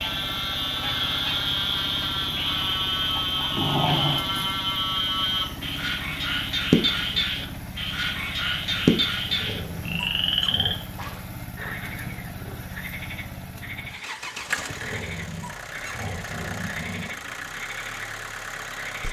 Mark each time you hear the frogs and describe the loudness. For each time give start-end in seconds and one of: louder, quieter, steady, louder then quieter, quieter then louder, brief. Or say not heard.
0.0-19.0 quieter.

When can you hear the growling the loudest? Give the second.
4 s.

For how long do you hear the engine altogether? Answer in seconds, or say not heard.
19 s.